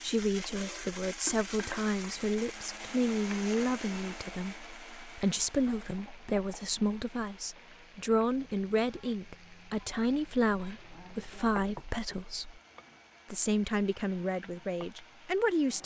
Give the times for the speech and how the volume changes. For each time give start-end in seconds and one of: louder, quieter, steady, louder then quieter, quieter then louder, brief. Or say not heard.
0.0-12.6 steady
13.3-15.8 brief.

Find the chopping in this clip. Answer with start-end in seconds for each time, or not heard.
not heard.